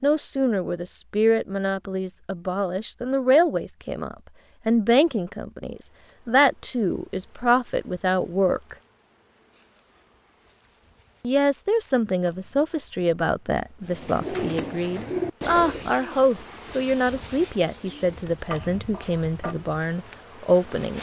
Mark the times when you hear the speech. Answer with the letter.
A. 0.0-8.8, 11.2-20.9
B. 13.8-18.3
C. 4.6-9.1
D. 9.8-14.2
A.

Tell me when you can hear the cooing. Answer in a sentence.
You can hear the cooing from 13.8 to 18.3 s.